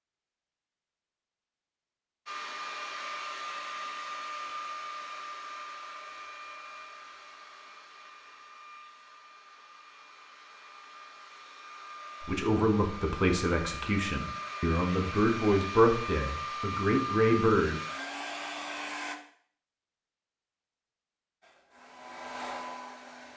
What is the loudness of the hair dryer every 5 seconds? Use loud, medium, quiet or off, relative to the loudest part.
loud, medium, medium, loud, medium.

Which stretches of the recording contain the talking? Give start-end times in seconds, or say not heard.
12.2-17.8.